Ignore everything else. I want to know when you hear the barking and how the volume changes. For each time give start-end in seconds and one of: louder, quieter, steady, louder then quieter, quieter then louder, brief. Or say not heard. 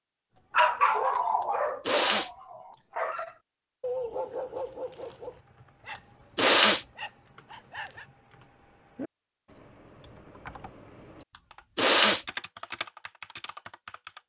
0.5-8.1 quieter.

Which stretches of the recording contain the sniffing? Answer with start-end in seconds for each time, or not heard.
1.9-2.3, 6.3-6.8, 11.8-12.2.